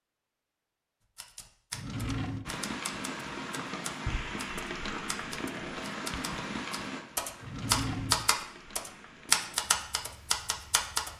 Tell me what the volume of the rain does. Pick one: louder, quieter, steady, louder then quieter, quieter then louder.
quieter.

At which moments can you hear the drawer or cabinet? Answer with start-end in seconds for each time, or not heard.
1.7-2.5, 7.4-8.3.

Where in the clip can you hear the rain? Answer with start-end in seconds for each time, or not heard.
2.5-11.1.